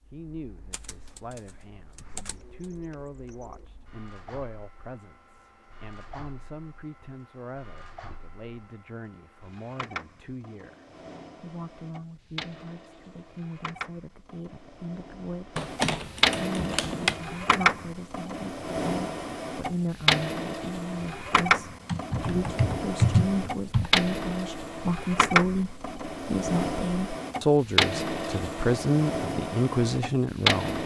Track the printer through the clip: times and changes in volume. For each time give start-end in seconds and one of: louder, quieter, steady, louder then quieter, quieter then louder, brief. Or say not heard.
0.0-30.8 louder.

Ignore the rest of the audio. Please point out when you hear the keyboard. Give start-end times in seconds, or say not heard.
0.7-2.4, 15.6-17.1, 21.9-23.9.